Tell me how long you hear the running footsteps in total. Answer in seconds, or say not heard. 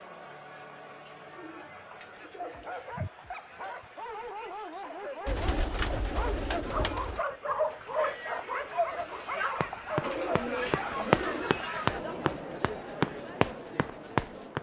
5 s.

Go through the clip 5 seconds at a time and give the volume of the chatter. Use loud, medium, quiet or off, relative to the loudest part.
medium, loud, loud.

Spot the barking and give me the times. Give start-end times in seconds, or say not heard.
2.4-11.6.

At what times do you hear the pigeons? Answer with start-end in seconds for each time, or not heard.
1.2-3.1, 5.2-7.2, 10.0-11.6.